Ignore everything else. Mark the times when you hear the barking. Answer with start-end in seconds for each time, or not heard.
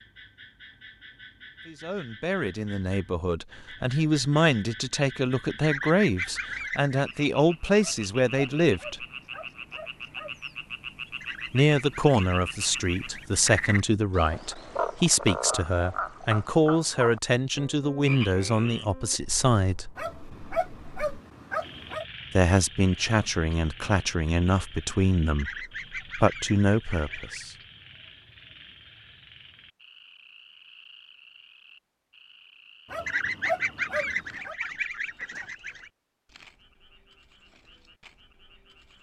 7.8-10.4, 19.9-22.1, 32.9-34.5.